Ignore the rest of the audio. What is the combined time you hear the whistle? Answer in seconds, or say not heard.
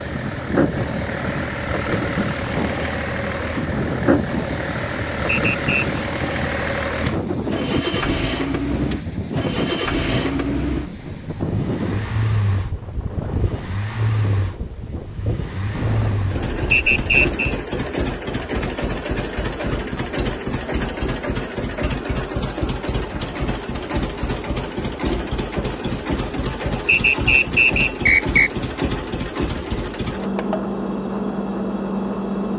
3 s.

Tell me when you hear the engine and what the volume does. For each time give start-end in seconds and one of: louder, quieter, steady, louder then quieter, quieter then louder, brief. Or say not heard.
0.0-32.5 steady.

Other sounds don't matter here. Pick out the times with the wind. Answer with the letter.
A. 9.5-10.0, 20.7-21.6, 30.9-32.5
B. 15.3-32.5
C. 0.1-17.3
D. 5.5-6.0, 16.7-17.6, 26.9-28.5
C.